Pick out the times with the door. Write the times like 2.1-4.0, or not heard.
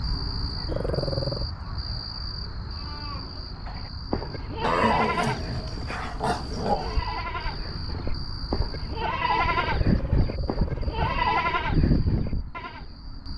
not heard.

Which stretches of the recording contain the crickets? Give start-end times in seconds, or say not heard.
0.0-13.3.